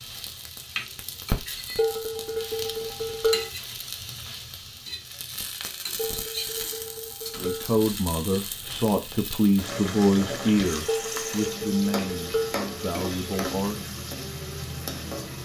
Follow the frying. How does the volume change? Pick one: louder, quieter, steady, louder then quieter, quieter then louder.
steady.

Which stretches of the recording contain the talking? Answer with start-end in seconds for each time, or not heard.
7.3-13.8.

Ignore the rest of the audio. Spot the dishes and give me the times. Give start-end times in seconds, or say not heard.
1.8-3.5, 6.0-7.7, 10.8-12.6.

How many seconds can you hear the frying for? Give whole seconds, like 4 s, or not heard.
15 s.